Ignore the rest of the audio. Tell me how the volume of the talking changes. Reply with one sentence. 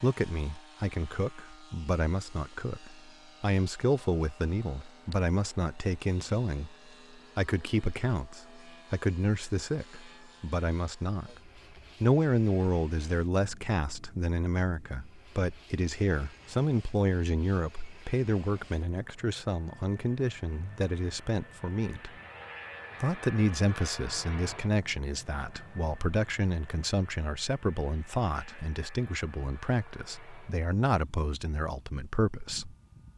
The volume of the talking stays about the same.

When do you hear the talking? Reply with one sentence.
You can hear the talking from 0.0 to 6.8 s, from 7.3 to 11.4 s, from 12.0 to 22.1 s and from 23.0 to 32.8 s.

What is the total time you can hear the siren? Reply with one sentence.
The siren can't be heard in this clip.